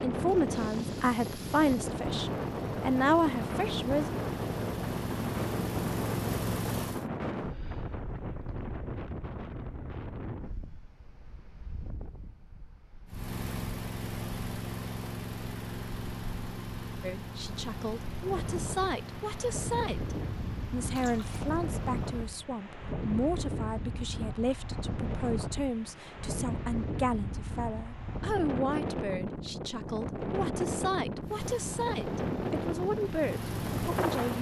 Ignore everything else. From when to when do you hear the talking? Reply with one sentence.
The talking can be heard from 0.0 to 4.1 s and from 17.0 to 34.3 s.